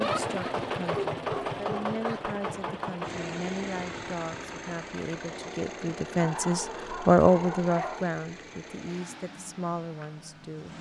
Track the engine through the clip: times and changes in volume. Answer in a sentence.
The engine can be heard from 0.0 to 10.7 s, getting quieter.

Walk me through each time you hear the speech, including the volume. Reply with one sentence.
The speech can be heard from 0.0 to 10.7 s, getting louder then quieter.